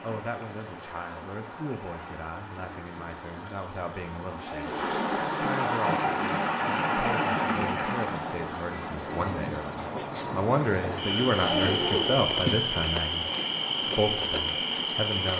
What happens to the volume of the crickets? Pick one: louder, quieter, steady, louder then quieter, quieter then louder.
louder.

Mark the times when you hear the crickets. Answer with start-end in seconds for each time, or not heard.
5.7-15.3.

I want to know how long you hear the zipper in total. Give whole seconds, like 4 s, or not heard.
2 s.